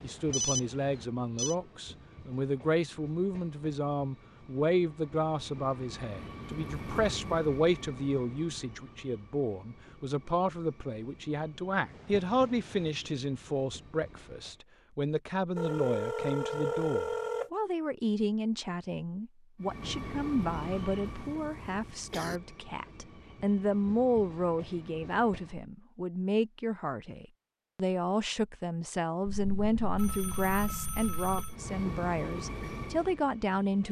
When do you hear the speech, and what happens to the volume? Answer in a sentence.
The speech can be heard from 0.0 to 33.8 s, at a steady volume.